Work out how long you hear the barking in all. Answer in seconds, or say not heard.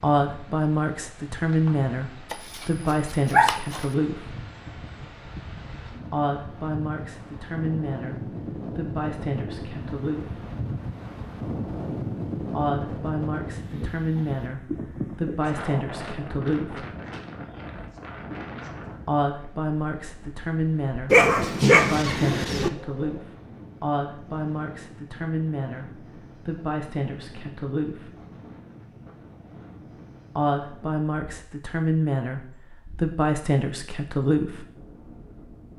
3 s.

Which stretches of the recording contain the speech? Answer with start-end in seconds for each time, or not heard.
0.0-4.3, 6.1-10.4, 12.5-16.9, 19.1-28.1, 30.4-34.6.